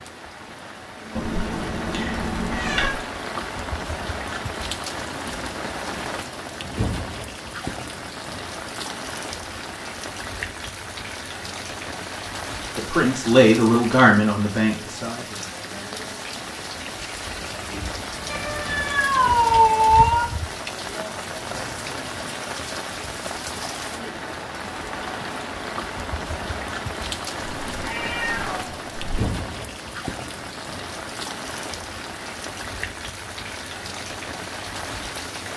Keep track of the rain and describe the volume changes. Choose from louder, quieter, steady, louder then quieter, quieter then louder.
steady.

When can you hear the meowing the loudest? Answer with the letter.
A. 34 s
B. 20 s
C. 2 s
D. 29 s
B.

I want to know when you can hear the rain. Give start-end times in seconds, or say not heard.
0.0-35.5.